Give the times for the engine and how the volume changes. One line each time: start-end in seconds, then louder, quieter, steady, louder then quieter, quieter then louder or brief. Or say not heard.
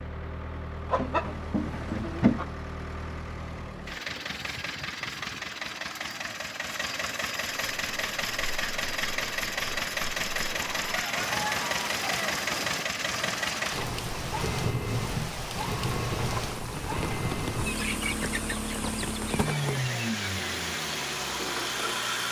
0.0-22.2 louder.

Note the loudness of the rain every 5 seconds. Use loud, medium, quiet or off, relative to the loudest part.
off, medium, loud, loud, loud.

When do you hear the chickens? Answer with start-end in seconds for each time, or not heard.
0.9-2.5, 10.6-12.4, 17.6-19.4.